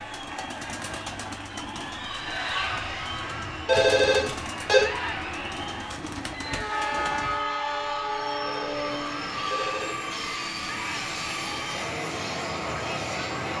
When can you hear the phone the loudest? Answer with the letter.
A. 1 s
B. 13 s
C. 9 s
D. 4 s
D.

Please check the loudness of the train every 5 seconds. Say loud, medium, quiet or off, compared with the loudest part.
medium, loud, loud.